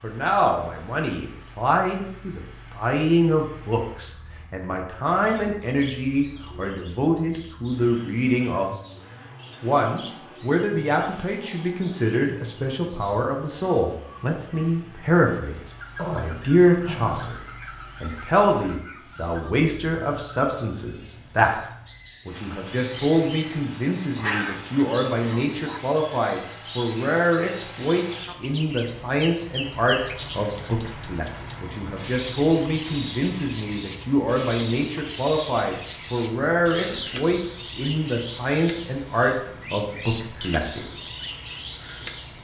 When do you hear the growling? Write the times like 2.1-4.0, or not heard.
15.9-17.4, 24.1-25.8.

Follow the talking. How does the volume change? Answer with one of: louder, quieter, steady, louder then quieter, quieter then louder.
steady.